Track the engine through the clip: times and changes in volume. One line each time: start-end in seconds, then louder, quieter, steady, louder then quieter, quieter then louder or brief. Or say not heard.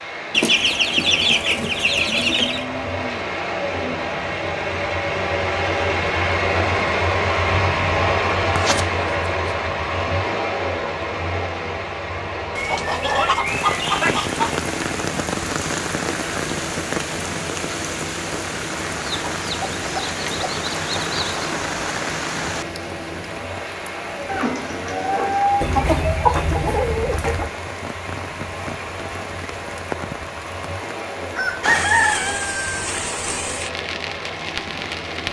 0.0-35.2 quieter.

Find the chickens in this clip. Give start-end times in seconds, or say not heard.
0.3-2.6, 8.1-9.6, 12.6-14.6, 19.1-21.5, 25.6-27.5, 31.4-32.6.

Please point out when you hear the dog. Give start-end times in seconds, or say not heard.
not heard.